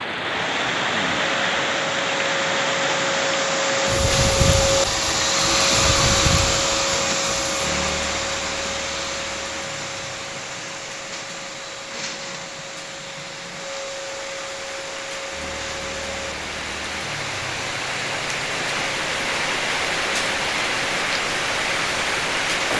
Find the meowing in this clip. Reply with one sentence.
You can't hear the meowing here.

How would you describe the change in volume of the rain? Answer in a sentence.
The volume of the rain goes down, then up.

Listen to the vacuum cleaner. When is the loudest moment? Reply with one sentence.
The loudest moment of the vacuum cleaner is at 6 seconds.